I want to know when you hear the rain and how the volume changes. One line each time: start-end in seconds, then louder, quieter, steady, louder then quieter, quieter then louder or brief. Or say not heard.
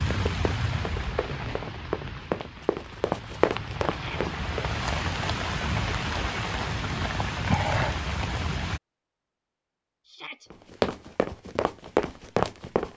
0.0-8.8 quieter then louder.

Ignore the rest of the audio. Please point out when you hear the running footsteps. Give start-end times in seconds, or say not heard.
0.1-4.7, 10.5-12.9.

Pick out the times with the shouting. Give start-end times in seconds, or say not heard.
3.9-4.3, 10.1-10.5.